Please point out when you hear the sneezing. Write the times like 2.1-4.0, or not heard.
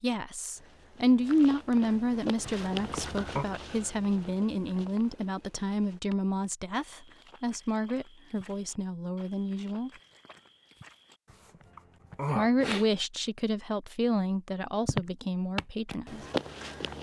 2.4-3.5, 11.3-12.8.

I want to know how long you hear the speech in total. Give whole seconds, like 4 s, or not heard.
14 s.